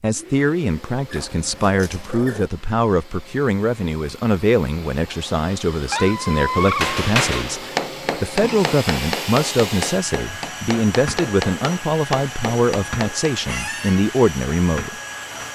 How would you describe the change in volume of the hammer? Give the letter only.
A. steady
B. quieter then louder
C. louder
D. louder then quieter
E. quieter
E.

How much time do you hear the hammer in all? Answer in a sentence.
You can hear the hammer for 7 seconds altogether.